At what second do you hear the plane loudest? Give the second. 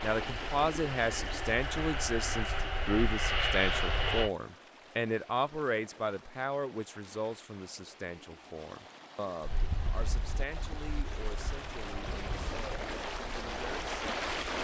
4 s.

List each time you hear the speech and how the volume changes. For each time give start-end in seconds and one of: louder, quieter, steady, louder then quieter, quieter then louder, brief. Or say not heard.
0.0-14.3 quieter.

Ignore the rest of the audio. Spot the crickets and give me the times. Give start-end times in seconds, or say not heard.
not heard.